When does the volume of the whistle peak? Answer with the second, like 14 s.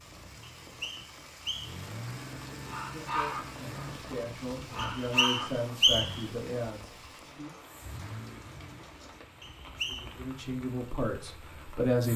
6 s.